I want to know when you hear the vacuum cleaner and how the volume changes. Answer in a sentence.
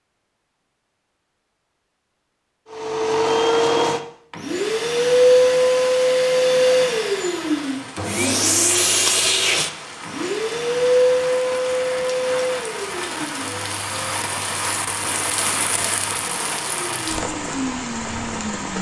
The vacuum cleaner can be heard from 2.7 to 18.7 s, getting quieter.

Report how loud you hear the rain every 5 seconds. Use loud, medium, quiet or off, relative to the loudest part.
off, medium, loud, loud.